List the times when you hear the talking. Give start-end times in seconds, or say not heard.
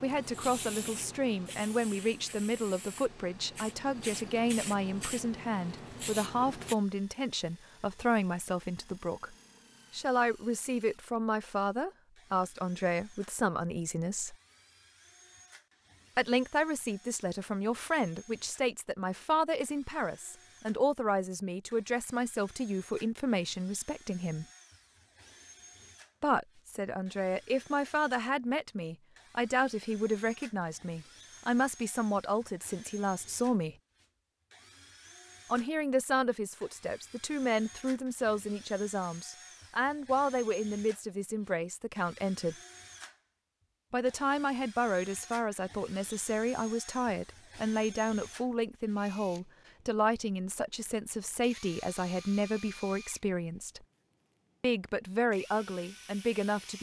0.0-14.3, 16.1-24.4, 26.2-33.8, 35.5-42.5, 43.9-53.8, 54.6-56.7.